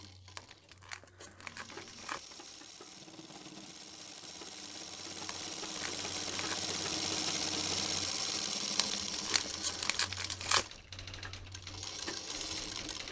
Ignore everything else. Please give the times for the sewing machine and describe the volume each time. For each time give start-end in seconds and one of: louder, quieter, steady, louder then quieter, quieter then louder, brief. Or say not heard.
0.0-13.0 louder then quieter.